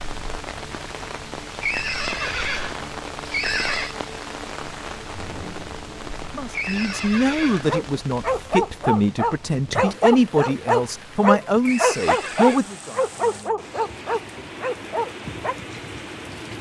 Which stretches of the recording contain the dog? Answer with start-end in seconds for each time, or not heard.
7.7-15.6.